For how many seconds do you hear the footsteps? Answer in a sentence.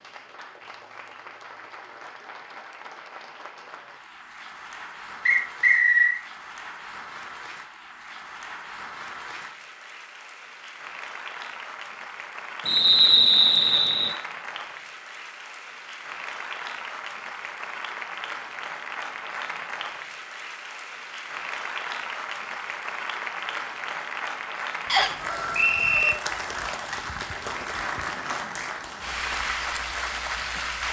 The footsteps can't be heard in this clip.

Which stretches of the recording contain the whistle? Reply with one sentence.
The whistle can be heard from 5.2 to 6.2 s, from 12.7 to 14.2 s and from 24.9 to 26.1 s.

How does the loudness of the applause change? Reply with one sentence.
The volume of the applause goes up.